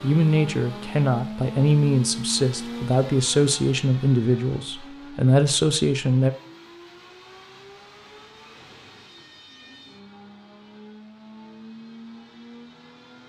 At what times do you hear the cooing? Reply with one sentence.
You can't hear the cooing here.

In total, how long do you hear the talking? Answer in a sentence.
The talking can be heard for 6 seconds in total.